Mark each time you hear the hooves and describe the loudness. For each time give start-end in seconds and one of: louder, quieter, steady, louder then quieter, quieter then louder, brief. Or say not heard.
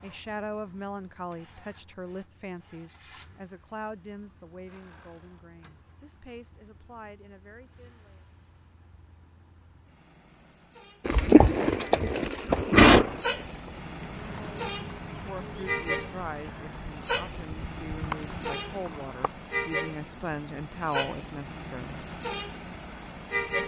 11.1-19.2 quieter then louder.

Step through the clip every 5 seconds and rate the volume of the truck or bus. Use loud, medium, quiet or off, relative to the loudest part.
quiet, quiet, loud, loud, loud.